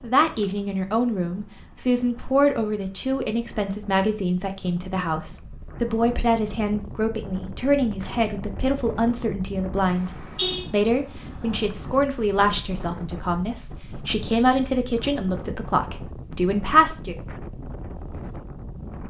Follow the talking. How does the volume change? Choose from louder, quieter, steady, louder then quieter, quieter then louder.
steady.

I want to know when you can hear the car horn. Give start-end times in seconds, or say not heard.
9.9-10.7.